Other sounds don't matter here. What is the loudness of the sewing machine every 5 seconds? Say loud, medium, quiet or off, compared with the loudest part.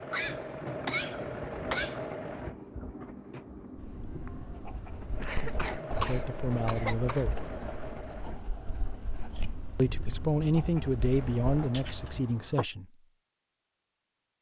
loud, loud, medium.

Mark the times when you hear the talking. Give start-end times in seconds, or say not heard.
5.4-7.4, 9.8-12.9.